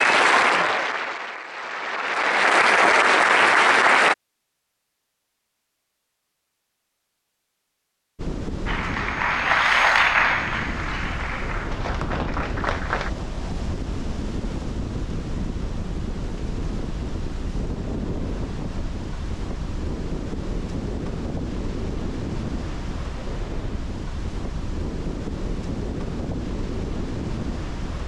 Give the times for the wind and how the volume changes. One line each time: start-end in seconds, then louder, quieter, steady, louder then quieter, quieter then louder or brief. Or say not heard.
8.2-28.0 steady.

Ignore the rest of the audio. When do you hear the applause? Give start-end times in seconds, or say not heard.
0.0-4.2, 8.7-13.1.